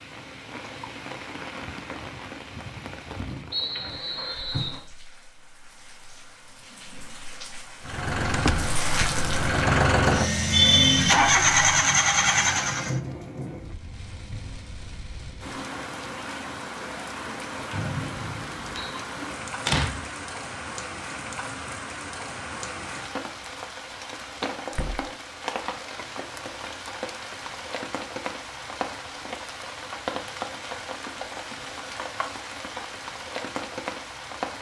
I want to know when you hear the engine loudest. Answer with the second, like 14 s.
11 s.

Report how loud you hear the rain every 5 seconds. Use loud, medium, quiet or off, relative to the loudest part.
medium, loud, loud, loud, loud, loud, loud.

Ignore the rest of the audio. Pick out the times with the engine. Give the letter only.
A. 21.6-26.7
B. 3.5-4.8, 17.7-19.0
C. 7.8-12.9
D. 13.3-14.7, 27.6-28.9
C.